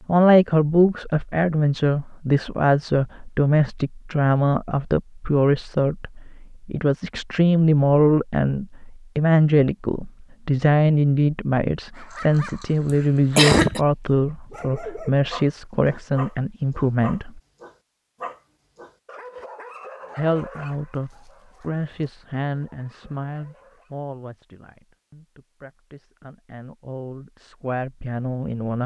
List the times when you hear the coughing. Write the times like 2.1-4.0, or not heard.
12.8-13.8.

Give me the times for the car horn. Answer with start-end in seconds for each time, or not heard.
not heard.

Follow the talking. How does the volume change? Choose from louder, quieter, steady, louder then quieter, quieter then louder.
quieter.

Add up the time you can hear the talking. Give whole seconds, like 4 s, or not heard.
26 s.